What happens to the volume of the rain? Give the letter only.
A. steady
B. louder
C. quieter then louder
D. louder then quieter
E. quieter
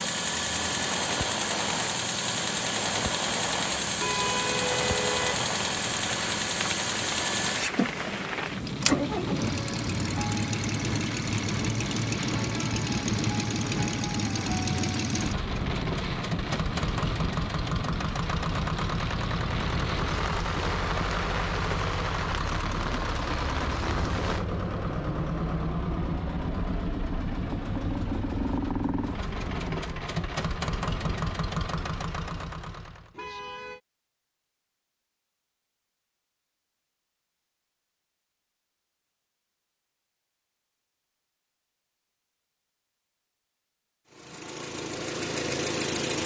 A.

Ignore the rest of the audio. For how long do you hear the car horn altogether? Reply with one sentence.
The car horn can be heard for 2 seconds in total.